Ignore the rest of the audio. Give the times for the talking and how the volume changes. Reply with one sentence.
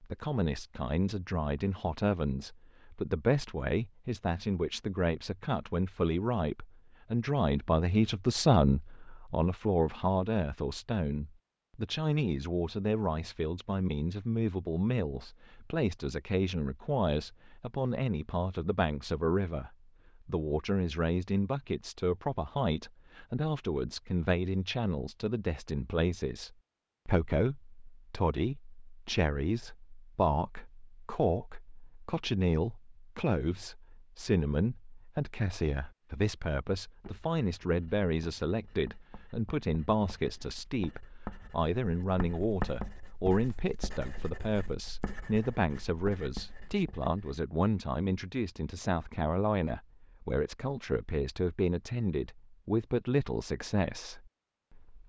The talking can be heard from 0.0 to 55.0 s, at a steady volume.